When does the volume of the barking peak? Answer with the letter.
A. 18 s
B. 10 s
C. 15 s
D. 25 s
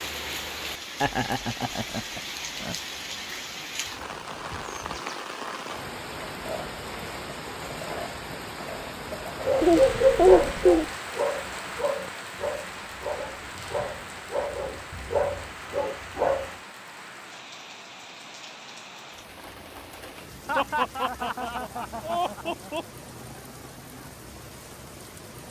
B.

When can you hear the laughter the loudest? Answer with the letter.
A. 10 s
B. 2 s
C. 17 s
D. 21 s
A.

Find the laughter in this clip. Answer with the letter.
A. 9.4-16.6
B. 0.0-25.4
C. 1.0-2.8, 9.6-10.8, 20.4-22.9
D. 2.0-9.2
C.